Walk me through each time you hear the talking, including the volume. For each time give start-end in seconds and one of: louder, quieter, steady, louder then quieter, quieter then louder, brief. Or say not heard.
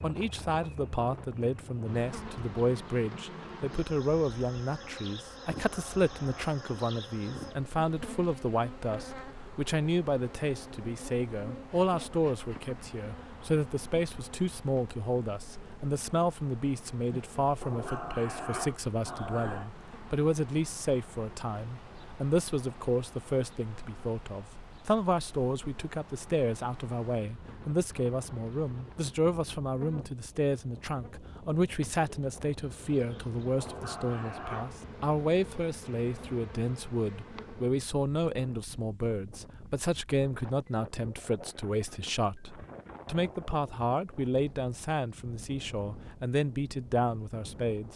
0.0-47.9 steady.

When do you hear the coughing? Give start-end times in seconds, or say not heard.
not heard.